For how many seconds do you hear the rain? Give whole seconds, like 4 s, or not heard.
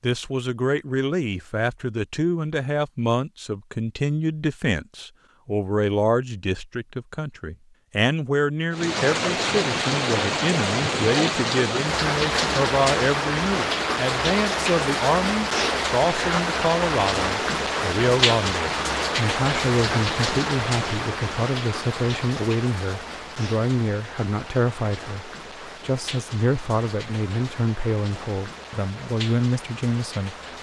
22 s.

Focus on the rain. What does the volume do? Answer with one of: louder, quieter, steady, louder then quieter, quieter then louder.
quieter.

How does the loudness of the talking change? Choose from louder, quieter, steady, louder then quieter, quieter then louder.
steady.